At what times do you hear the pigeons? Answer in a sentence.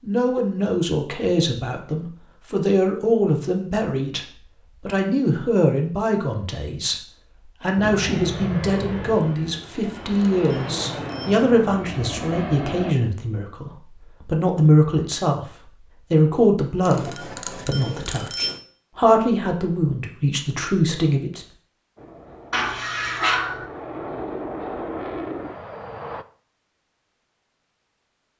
The pigeons can't be heard in this clip.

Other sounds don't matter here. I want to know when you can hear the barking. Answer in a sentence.
The barking can be heard from 22.5 to 23.6 s.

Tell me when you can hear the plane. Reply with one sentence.
You can hear the plane from 7.8 to 12.9 s and from 21.9 to 26.2 s.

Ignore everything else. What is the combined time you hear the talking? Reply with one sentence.
You can hear the talking for 21 seconds altogether.